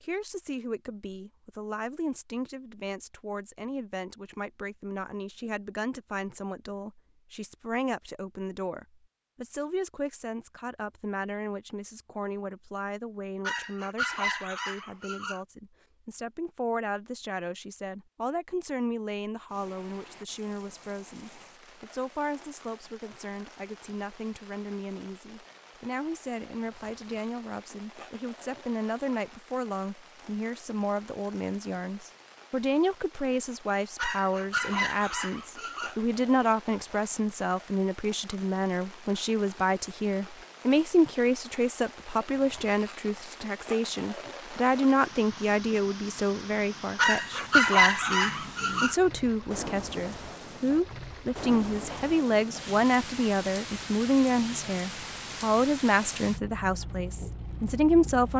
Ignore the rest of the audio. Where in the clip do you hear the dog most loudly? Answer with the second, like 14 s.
48 s.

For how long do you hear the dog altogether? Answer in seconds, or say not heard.
6 s.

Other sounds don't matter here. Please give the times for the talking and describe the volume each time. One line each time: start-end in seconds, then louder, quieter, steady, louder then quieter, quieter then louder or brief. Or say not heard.
0.0-58.3 louder.